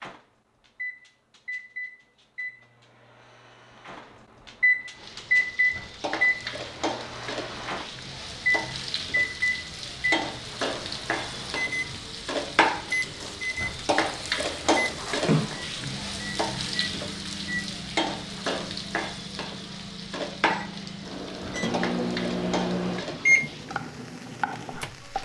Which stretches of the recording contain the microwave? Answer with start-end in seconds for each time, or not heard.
0.0-25.2.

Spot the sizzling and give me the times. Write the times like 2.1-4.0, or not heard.
5.0-25.2.